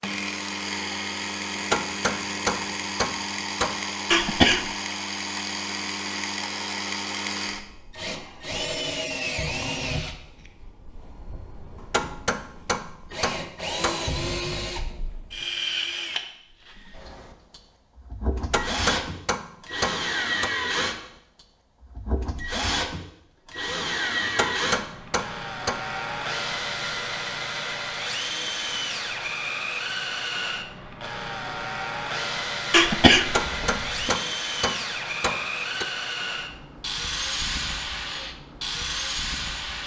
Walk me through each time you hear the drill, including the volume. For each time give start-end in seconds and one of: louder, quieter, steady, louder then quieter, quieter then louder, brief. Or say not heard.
0.0-39.8 steady.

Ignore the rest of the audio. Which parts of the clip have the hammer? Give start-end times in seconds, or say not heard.
1.6-3.8, 11.8-14.1, 18.4-20.5, 24.2-25.8, 33.2-35.9.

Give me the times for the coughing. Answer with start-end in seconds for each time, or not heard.
4.1-4.7, 32.7-34.1.